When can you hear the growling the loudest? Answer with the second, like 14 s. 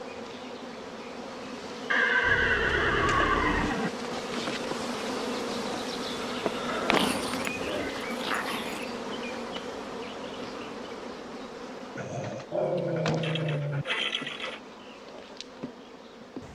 13 s.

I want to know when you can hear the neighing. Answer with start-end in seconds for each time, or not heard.
1.9-3.9, 6.0-7.9, 12.8-14.6.